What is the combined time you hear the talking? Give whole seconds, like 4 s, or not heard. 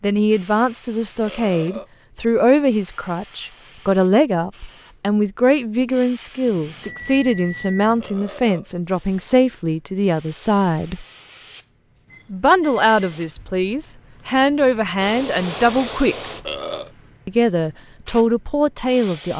17 s.